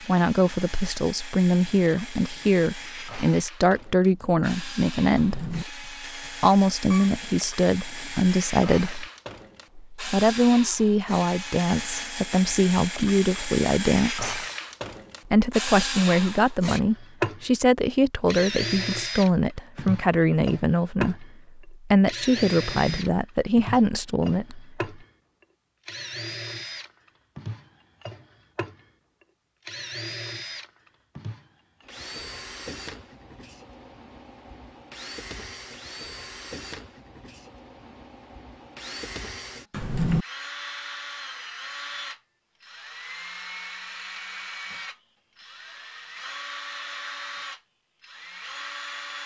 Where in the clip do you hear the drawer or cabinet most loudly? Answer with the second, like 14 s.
40 s.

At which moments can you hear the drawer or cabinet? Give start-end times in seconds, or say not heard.
5.2-5.7, 22.5-23.0, 39.7-40.2.